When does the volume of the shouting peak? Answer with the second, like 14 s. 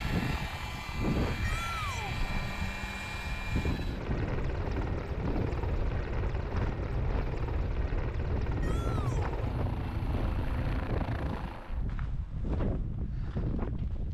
2 s.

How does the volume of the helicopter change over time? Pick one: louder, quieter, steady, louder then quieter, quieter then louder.
steady.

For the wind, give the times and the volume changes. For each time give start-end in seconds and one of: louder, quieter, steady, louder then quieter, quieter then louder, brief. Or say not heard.
0.0-14.0 steady.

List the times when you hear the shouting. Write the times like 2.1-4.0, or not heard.
1.4-2.1, 8.6-9.3.